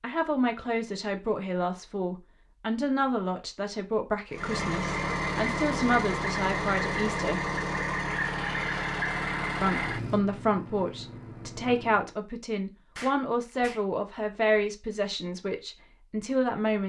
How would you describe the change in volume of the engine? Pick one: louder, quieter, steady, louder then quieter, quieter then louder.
quieter.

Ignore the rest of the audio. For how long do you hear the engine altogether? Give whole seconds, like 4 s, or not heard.
8 s.